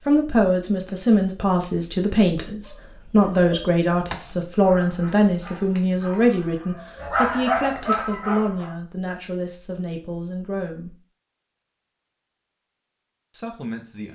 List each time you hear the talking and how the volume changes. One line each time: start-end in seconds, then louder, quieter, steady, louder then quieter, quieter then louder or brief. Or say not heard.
0.1-10.9 quieter
13.3-14.1 brief.